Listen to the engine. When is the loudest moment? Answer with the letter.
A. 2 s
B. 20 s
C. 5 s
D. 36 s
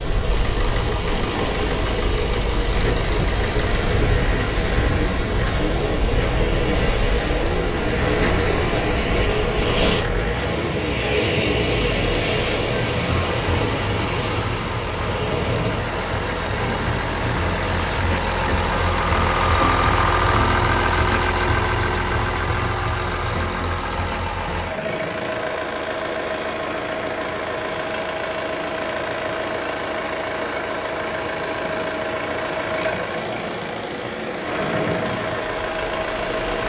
B.